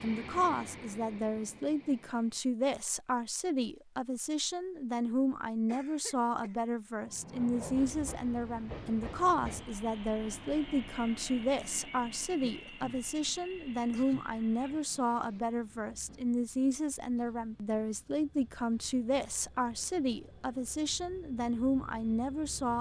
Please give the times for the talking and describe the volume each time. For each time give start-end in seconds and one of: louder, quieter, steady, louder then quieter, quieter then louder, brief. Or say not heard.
0.0-22.7 steady.